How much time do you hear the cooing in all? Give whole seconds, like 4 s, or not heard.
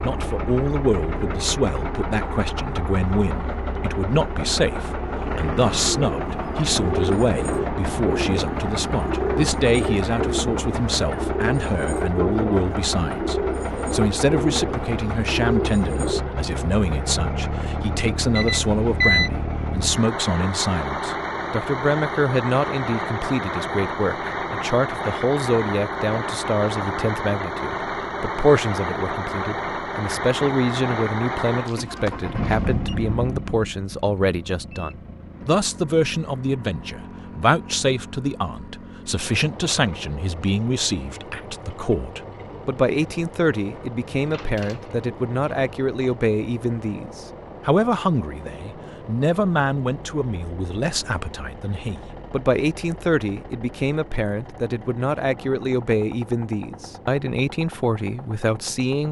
10 s.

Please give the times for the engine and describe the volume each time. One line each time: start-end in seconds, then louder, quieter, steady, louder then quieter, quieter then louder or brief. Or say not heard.
0.0-59.0 quieter.